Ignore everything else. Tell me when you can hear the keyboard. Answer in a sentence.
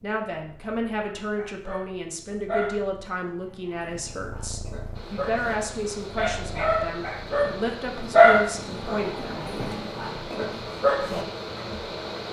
The keyboard can't be heard in this clip.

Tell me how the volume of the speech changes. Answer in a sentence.
The loudness of the speech stays about the same.